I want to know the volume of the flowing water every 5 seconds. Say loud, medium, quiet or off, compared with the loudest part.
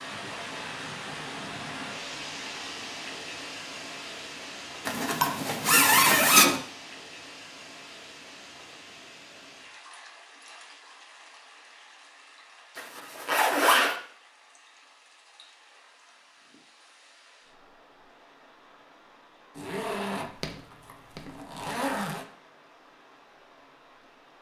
loud, medium, quiet, quiet, quiet.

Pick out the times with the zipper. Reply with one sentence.
You can hear the zipper from 4.8 to 6.5 s, from 12.8 to 13.9 s and from 19.6 to 22.2 s.